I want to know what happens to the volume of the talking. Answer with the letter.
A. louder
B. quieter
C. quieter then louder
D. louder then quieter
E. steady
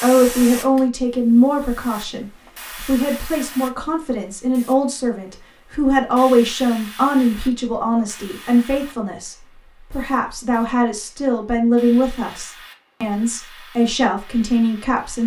E.